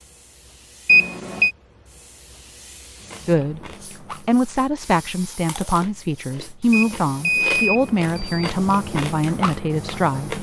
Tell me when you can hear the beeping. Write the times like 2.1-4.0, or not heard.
0.8-1.5, 6.7-8.5.